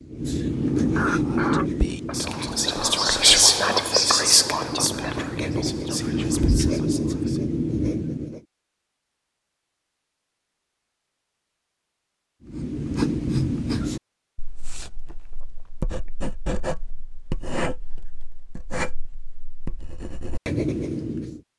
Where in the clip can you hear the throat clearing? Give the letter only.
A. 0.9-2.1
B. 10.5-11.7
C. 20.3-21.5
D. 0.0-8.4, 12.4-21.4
A.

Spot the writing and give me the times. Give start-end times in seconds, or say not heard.
0.0-8.4, 12.4-21.4.